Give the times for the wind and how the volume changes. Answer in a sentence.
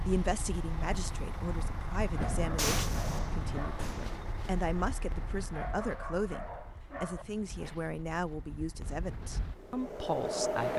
You can hear the wind from 0.0 to 10.7 s, getting quieter then louder.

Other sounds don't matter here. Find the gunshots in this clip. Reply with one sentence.
The gunshots can be heard from 2.5 to 4.2 s.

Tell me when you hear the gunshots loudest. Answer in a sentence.
The volume of the gunshots peaks at 3 seconds.